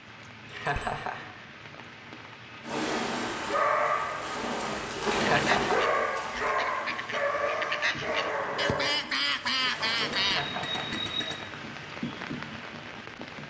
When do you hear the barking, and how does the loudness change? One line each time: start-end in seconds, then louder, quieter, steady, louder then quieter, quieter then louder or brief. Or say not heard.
2.6-10.2 quieter.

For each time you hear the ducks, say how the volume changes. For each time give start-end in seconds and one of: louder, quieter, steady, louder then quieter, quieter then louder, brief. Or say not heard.
5.2-10.4 louder.